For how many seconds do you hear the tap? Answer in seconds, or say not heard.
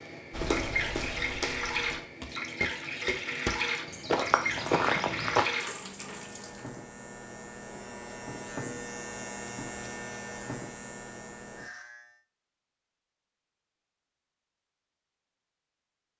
7 s.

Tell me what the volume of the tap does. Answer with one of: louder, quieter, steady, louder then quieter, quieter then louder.
steady.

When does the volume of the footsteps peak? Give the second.
5 s.